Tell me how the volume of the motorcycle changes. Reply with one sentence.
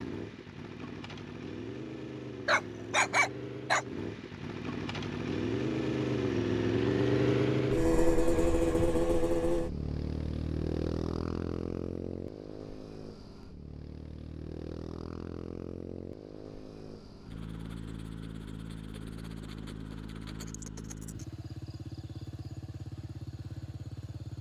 The volume of the motorcycle goes up, then down.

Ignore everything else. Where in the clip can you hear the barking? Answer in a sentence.
You can hear the barking from 2.5 to 3.9 s.